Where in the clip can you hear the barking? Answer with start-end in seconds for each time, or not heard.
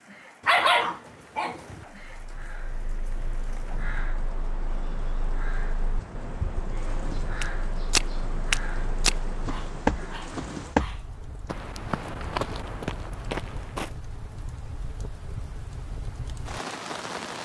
0.5-1.9, 9.4-11.1.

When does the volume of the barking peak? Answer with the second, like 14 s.
1 s.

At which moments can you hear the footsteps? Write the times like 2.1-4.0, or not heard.
7.4-13.9.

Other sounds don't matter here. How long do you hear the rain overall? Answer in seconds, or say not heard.
17 s.